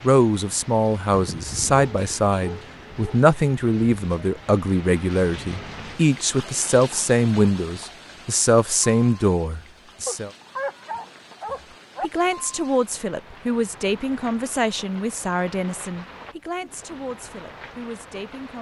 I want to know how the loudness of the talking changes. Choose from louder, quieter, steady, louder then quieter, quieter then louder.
quieter.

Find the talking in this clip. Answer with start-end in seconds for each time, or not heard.
0.0-10.3, 12.0-18.5.